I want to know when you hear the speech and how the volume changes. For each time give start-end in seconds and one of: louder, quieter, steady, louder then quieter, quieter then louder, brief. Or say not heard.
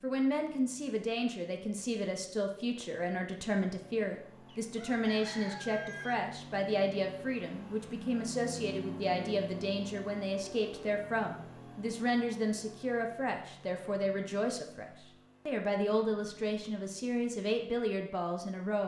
0.0-18.8 steady.